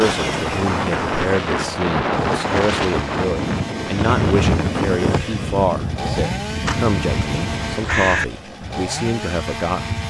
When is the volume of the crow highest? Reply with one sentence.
The volume of the crow peaks at 8 seconds.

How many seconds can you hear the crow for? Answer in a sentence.
You can hear the crow for 3 seconds altogether.